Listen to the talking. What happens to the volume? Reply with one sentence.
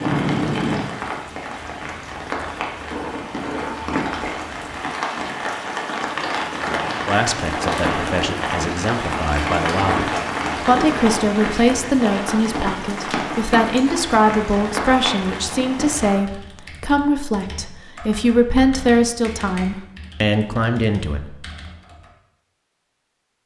The volume of the talking goes up.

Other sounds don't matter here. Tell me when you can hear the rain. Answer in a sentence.
The rain can be heard from 0.0 to 16.2 s.